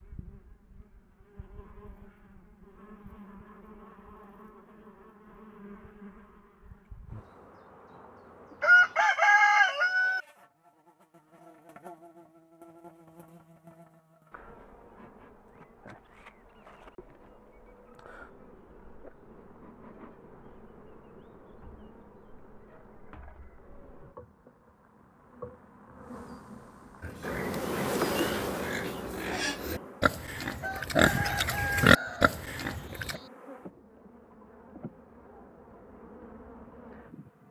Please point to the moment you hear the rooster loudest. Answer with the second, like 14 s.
9 s.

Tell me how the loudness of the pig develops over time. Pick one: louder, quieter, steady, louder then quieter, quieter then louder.
louder.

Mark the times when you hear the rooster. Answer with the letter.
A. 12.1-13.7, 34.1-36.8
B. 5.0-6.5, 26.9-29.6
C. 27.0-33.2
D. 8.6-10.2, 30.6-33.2
D.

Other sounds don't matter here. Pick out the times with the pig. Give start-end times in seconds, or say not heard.
27.0-33.2.